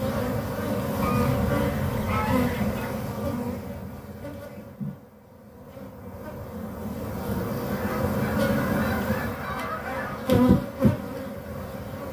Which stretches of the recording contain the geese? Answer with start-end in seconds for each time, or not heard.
1.0-3.0, 7.7-10.3.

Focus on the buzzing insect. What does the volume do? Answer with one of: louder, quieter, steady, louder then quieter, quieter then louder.
quieter then louder.